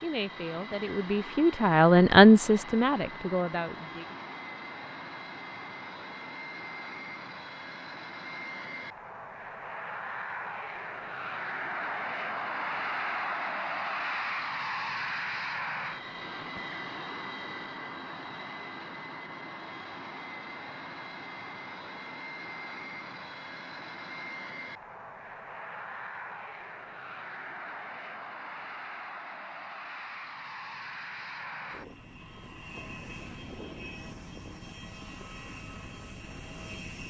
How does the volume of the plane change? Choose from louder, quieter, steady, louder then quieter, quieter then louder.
louder then quieter.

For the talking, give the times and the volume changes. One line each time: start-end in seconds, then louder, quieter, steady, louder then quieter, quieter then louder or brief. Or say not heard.
0.0-4.2 louder then quieter.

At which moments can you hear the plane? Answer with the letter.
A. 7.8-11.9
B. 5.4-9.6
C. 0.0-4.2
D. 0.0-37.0
D.